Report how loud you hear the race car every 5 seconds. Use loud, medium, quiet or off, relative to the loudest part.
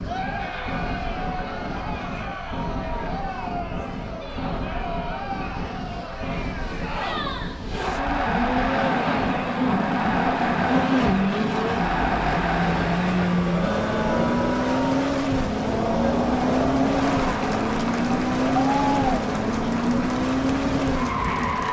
quiet, medium, loud, loud, loud.